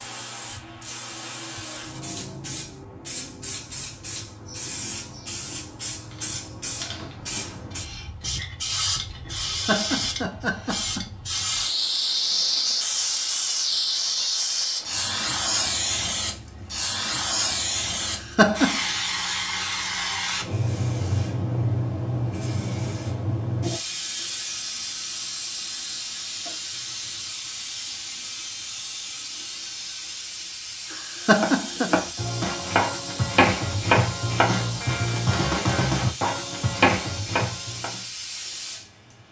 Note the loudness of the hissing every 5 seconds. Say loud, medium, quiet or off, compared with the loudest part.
medium, medium, loud, loud, loud, medium, medium, medium.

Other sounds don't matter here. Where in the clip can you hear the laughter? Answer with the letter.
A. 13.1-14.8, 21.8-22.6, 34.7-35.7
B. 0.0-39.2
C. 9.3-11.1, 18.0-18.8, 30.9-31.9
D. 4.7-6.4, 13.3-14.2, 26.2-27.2
C.